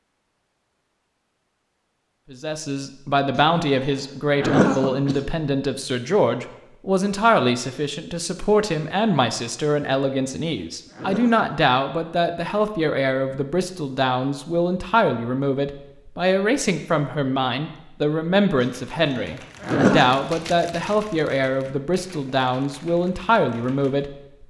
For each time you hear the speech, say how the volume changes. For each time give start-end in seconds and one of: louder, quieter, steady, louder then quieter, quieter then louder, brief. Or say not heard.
2.3-24.4 steady.